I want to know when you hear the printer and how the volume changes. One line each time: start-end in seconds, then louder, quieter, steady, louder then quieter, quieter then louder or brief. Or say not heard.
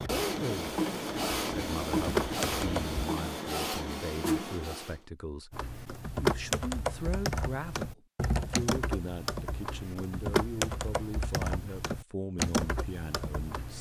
0.0-5.0 steady.